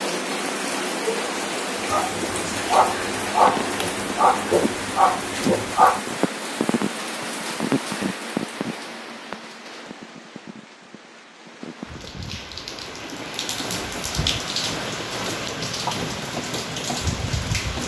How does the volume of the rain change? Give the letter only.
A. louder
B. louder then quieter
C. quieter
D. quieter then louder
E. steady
D.